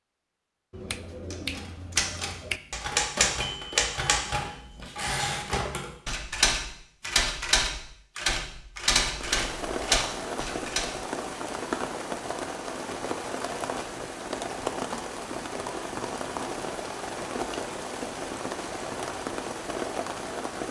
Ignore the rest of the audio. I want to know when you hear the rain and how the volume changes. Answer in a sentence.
You can hear the rain from 9.0 to 20.6 s, at a steady volume.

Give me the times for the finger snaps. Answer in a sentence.
You can hear the finger snaps from 0.7 to 2.6 s.